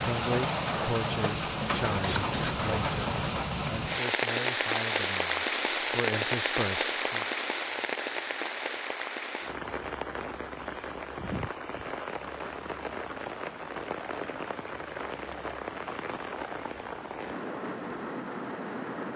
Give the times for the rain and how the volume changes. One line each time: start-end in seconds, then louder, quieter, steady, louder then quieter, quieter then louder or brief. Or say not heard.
0.0-19.1 quieter.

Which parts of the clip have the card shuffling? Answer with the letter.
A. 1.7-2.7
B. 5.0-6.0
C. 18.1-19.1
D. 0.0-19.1
A.